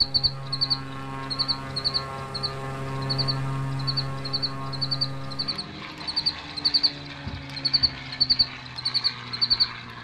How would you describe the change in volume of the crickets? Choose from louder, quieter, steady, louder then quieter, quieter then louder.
quieter then louder.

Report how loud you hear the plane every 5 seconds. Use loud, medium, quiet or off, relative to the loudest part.
loud, medium.